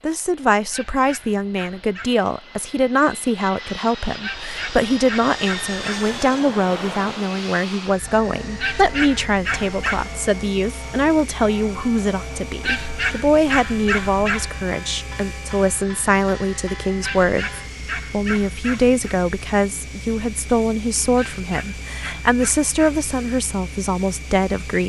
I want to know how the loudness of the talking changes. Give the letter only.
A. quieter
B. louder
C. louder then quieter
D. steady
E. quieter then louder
D.